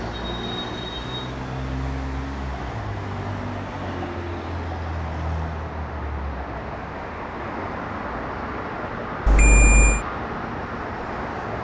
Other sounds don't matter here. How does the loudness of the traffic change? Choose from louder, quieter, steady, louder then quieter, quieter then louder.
steady.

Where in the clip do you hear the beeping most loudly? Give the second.
10 s.